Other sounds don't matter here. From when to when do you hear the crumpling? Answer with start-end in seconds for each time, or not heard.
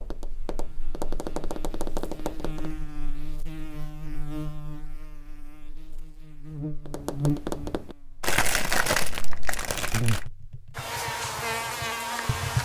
8.2-10.3.